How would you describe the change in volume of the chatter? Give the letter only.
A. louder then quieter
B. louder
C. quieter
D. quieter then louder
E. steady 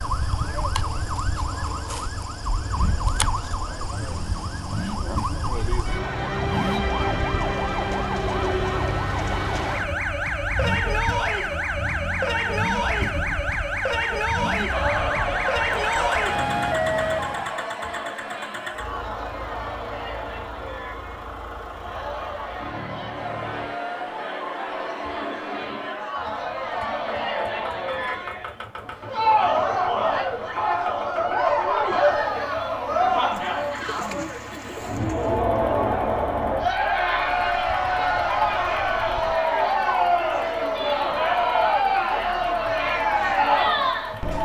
B.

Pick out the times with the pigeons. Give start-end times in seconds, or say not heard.
33.3-35.4.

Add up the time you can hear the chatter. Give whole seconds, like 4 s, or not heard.
30 s.